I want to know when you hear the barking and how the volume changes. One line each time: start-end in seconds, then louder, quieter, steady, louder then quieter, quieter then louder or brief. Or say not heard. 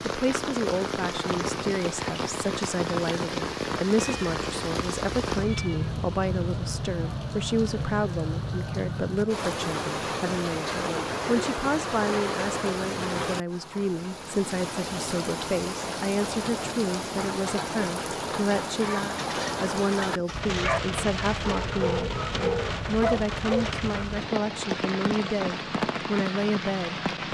18.8-23.8 louder.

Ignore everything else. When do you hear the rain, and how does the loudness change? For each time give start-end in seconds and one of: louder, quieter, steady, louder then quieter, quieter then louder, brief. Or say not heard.
0.0-27.3 steady.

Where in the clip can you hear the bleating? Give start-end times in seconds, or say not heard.
not heard.